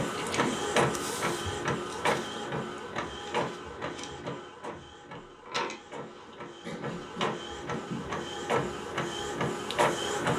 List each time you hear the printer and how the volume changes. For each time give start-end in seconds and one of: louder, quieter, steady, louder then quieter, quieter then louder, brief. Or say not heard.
0.0-10.3 quieter then louder.